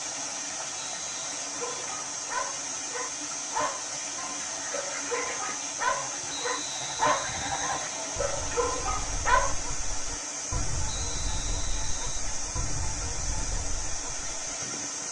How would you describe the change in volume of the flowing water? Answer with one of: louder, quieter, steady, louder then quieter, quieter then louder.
steady.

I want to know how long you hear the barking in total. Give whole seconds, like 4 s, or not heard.
8 s.